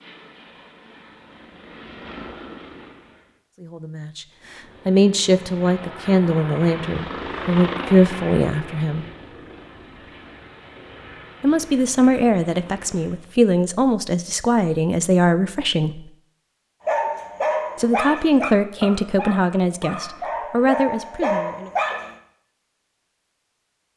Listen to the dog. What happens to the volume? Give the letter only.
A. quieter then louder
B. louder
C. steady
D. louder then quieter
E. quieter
A.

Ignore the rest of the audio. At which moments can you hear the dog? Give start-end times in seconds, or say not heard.
16.9-22.1.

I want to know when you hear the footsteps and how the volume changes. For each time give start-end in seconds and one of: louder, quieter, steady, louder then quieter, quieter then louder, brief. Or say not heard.
not heard.